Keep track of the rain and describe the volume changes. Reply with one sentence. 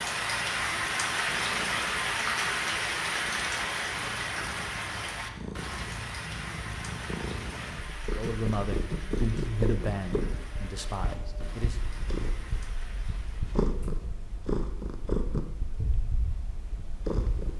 The volume of the rain goes down.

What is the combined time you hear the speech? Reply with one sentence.
The speech can be heard for 4 seconds in total.